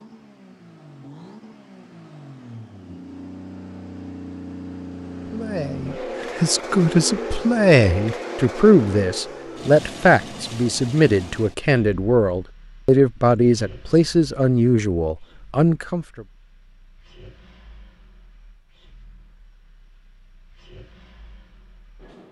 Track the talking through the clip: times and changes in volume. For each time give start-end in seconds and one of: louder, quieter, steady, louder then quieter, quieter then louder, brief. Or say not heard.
5.3-16.2 steady.